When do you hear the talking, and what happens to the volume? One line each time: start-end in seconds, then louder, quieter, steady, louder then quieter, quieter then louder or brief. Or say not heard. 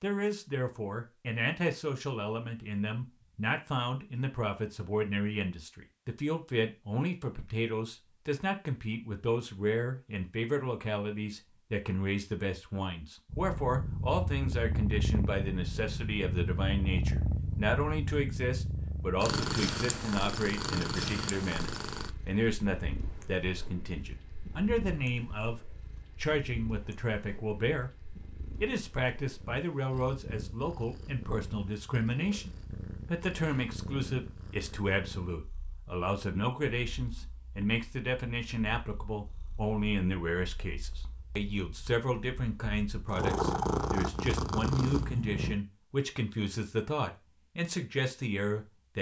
0.0-48.9 steady.